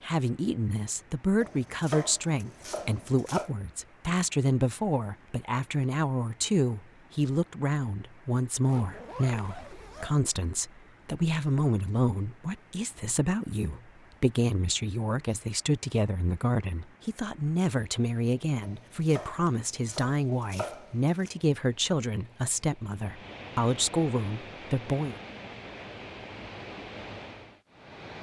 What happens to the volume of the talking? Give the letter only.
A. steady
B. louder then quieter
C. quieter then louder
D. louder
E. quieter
A.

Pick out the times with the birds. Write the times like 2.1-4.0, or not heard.
not heard.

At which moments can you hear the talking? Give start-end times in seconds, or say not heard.
0.0-25.1.